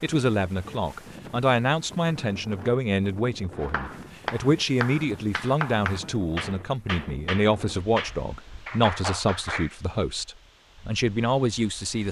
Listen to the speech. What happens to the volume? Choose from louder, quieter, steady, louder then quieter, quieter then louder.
steady.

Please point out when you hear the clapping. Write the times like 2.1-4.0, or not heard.
3.6-9.7.